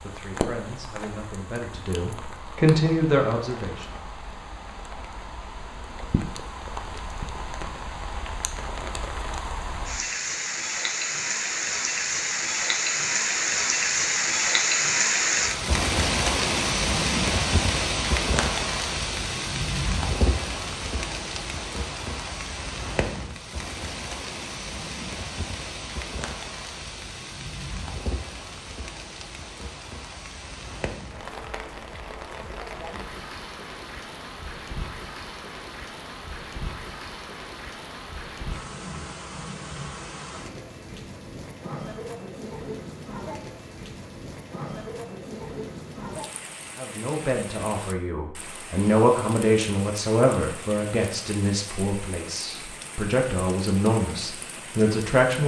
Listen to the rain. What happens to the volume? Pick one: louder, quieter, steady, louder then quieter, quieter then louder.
louder then quieter.